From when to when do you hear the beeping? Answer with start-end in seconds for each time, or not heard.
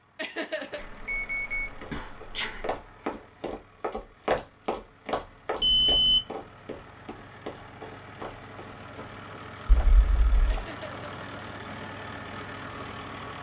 0.8-2.8, 5.6-6.2, 9.7-10.6.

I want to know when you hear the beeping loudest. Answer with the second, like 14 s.
6 s.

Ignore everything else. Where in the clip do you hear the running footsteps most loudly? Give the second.
4 s.